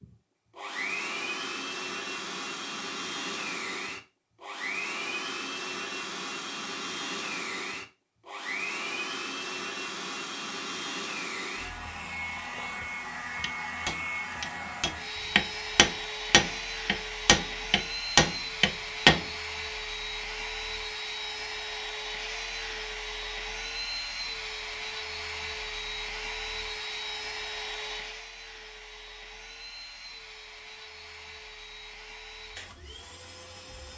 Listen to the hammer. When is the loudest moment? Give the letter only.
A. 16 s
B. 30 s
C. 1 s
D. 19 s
D.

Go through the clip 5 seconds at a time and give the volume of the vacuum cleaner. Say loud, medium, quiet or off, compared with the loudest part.
loud, loud, loud, loud, loud, loud, medium.